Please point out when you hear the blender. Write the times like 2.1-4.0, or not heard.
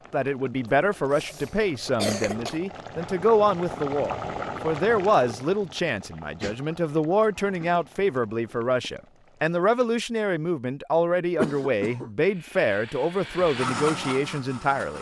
12.2-14.9.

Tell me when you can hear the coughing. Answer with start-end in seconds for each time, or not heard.
0.7-2.5, 11.3-12.1.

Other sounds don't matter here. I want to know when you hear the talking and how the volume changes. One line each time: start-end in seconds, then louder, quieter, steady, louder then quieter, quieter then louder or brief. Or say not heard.
0.1-14.9 steady.